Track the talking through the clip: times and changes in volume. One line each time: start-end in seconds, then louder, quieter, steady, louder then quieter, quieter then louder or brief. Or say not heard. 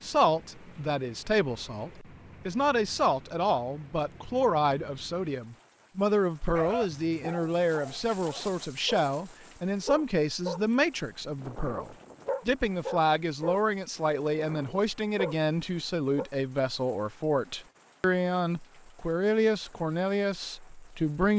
0.0-21.3 steady.